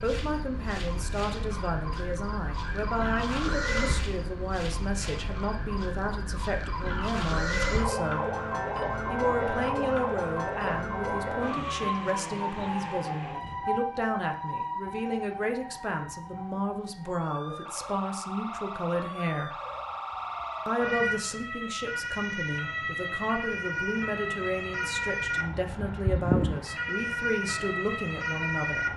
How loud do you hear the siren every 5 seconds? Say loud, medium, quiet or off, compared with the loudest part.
medium, loud, loud, medium, loud, loud.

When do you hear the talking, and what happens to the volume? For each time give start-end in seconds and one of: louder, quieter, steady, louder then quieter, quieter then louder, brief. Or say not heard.
0.0-8.2 steady
9.1-19.6 steady
20.6-28.9 steady.